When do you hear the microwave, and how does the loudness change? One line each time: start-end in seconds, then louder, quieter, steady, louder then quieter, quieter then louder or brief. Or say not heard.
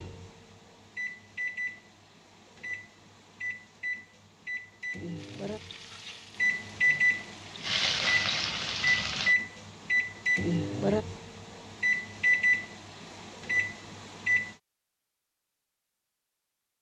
0.0-14.6 louder.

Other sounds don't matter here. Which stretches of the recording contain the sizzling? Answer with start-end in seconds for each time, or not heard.
5.2-9.3.